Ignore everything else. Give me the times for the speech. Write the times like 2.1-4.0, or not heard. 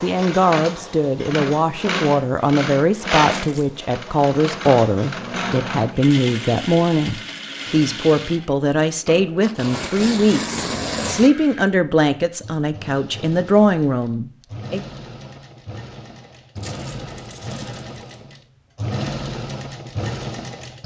0.0-14.8.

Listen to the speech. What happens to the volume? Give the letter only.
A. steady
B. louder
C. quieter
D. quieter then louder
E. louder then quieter
A.